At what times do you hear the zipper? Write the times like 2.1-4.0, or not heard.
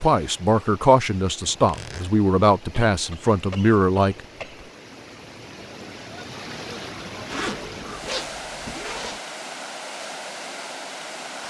1.5-2.1, 7.2-9.2.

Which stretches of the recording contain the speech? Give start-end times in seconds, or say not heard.
0.0-4.2.